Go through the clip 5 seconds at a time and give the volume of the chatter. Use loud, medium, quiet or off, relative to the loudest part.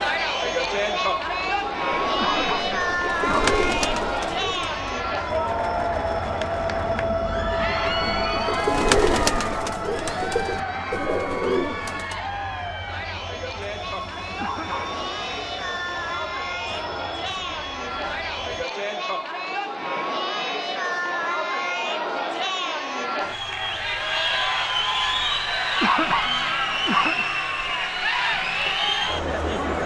loud, loud, medium, medium, loud, loud.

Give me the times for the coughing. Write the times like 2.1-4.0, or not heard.
2.1-3.5, 14.4-14.9, 25.8-27.2.